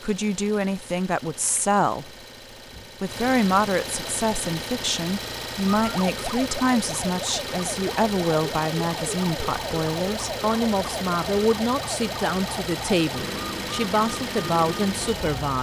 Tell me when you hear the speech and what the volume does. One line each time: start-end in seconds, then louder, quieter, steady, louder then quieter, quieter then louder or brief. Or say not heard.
0.0-2.1 brief
3.0-15.5 steady.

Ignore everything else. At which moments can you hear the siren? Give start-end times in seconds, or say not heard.
5.7-15.5.